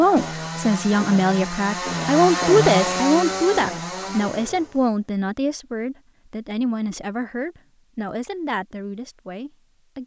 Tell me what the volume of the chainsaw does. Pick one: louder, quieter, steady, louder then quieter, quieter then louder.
louder then quieter.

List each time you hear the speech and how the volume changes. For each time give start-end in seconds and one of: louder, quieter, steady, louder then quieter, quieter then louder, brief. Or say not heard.
0.0-10.0 quieter.